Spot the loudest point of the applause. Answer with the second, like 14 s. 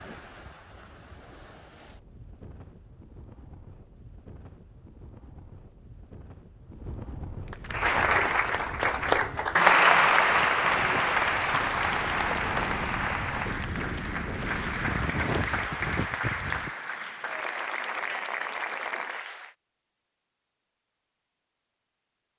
10 s.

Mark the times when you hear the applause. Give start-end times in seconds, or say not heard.
7.5-19.6.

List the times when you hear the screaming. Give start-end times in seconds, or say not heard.
not heard.